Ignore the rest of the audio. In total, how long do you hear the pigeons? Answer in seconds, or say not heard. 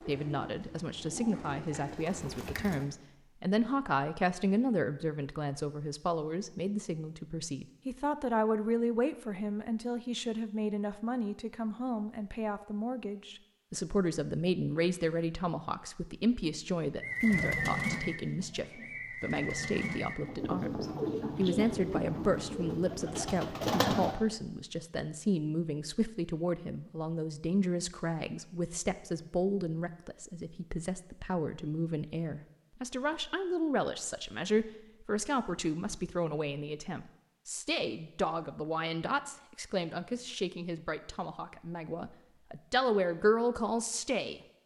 10 s.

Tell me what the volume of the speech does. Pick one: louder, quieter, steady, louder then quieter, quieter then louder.
steady.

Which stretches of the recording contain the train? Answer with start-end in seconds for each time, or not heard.
not heard.